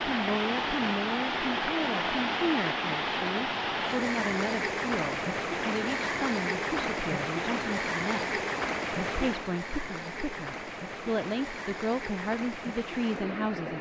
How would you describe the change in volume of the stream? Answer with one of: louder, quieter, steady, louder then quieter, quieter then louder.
quieter.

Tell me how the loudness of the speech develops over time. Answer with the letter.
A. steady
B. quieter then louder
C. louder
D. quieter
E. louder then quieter
A.